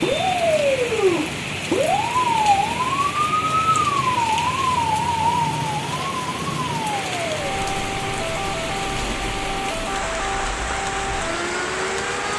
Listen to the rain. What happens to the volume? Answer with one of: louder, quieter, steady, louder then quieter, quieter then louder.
steady.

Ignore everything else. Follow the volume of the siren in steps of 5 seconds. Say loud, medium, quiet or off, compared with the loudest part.
loud, medium, medium.